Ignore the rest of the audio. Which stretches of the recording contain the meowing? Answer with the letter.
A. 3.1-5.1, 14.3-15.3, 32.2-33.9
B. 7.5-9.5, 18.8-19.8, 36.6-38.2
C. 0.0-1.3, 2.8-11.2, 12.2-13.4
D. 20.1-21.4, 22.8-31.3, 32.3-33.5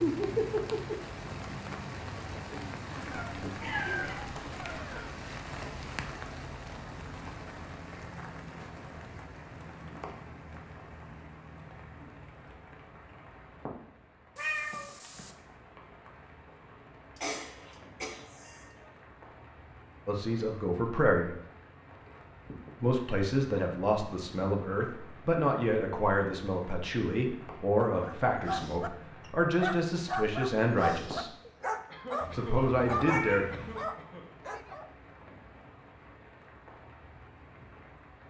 A.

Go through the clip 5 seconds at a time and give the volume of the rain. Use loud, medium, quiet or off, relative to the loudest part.
loud, medium, quiet, quiet, quiet, quiet, quiet, quiet.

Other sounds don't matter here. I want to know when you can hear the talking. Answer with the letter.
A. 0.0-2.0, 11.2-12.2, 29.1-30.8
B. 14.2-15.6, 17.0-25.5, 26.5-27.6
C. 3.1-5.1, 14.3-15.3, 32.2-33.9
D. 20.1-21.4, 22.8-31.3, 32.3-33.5
D.